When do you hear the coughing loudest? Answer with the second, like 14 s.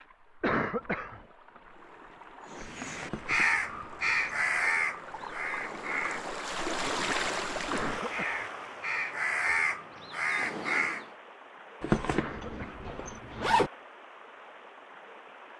1 s.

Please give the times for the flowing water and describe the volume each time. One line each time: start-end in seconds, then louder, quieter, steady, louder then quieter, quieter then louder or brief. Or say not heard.
0.0-15.5 louder then quieter.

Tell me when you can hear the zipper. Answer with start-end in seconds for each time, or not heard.
3.0-4.3, 11.8-13.7.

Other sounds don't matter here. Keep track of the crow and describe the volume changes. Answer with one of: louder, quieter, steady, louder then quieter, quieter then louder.
quieter then louder.